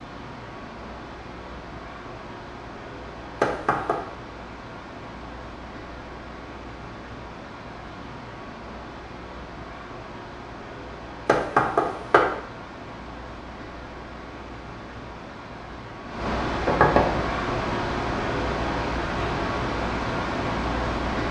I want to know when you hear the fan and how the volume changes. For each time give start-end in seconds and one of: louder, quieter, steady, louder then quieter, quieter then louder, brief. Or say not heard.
0.0-21.2 louder.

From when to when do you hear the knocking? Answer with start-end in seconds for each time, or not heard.
3.4-4.0, 11.2-12.3, 16.6-17.1.